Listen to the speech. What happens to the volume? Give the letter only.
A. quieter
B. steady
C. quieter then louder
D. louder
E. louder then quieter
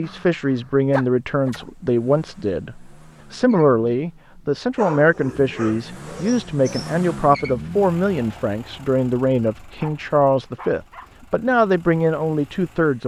B.